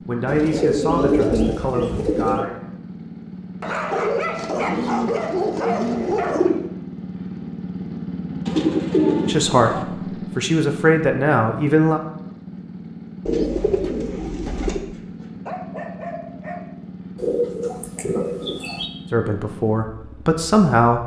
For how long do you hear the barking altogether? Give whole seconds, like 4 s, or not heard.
5 s.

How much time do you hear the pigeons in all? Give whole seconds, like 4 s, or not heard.
9 s.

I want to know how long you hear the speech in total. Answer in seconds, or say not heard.
7 s.